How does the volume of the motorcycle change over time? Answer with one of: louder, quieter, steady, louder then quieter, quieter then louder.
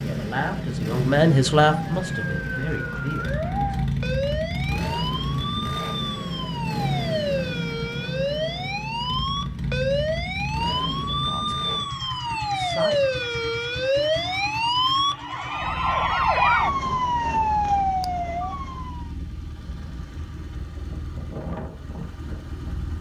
quieter.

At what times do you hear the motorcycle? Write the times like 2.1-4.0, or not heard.
0.0-22.9.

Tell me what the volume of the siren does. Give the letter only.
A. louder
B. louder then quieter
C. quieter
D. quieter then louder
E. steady
A.